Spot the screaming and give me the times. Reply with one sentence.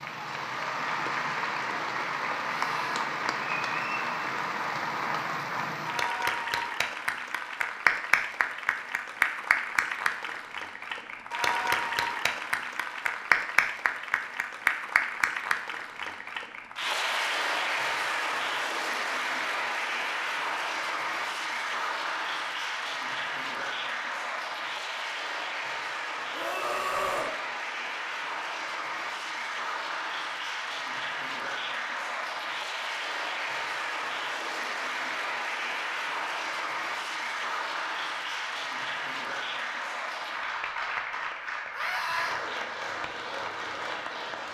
The screaming can be heard from 2.6 to 3.0 s, from 26.3 to 27.3 s and from 41.7 to 42.4 s.